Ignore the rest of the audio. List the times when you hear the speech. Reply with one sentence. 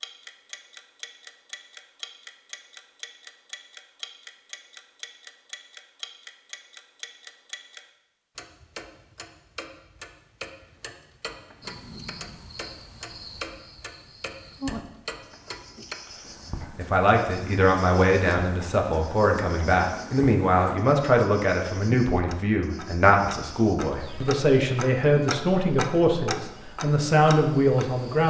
The speech can be heard from 16.8 to 28.2 s.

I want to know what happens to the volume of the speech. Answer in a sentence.
The loudness of the speech stays about the same.